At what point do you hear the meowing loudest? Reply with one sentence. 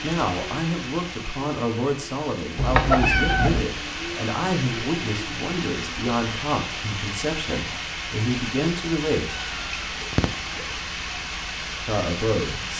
The volume of the meowing peaks at 3 seconds.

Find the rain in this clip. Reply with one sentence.
The rain can be heard from 0.0 to 12.7 s.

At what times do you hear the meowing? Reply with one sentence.
You can hear the meowing from 2.5 to 3.6 s and from 9.2 to 10.8 s.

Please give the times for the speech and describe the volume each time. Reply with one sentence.
The speech can be heard from 0.0 to 9.3 s, at a steady volume; and briefly from 11.8 to 12.7 s.